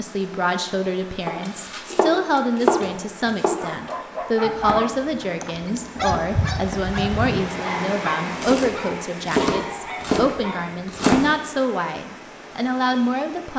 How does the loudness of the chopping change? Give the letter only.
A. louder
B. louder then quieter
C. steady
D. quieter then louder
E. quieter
D.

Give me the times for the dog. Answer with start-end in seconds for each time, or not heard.
3.5-10.8.